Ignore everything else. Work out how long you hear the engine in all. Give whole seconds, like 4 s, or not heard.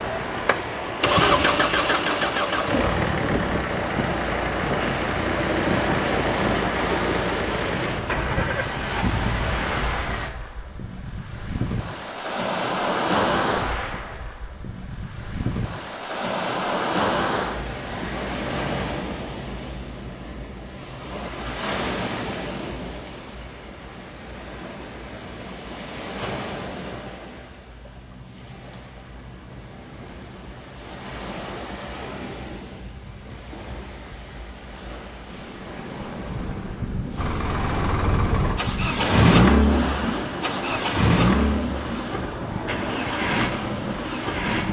18 s.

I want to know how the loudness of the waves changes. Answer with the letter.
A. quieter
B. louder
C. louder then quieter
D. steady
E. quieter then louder
E.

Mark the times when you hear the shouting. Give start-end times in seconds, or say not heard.
not heard.